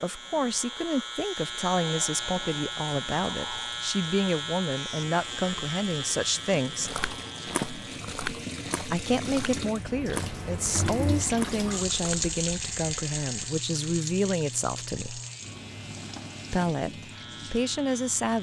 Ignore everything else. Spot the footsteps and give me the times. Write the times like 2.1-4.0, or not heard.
6.8-12.3.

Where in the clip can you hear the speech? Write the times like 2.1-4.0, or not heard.
0.0-6.9, 8.9-15.2, 16.5-18.3.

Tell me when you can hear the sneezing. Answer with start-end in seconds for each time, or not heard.
not heard.